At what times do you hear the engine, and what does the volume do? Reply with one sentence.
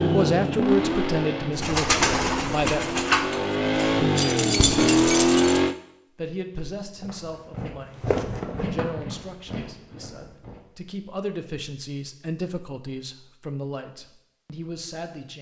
The engine can be heard from 0.0 to 5.8 s, getting quieter then louder.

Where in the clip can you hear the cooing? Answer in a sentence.
The cooing can be heard from 1.6 to 4.0 s.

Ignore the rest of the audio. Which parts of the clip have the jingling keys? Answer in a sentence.
You can hear the jingling keys from 4.2 to 5.6 s.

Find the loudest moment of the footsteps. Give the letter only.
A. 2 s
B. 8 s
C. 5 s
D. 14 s
B.